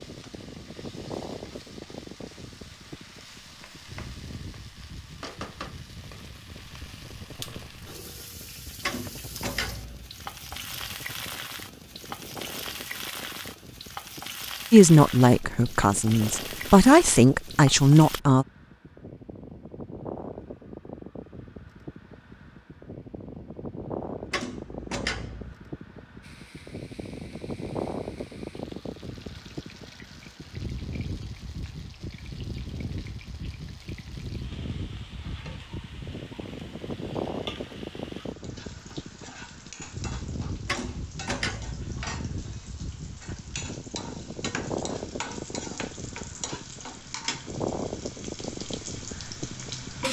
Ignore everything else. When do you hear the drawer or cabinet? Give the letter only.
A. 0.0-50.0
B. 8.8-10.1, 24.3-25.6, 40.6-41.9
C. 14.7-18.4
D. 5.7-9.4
B.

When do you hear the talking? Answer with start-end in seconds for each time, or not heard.
14.7-18.4.